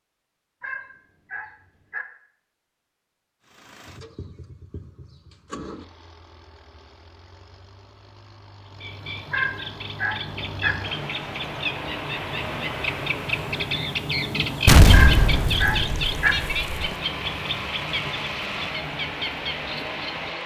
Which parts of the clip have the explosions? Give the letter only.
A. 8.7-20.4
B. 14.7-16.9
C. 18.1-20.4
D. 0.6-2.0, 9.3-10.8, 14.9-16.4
B.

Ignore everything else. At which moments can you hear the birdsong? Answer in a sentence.
The birdsong can be heard from 8.7 to 20.4 s.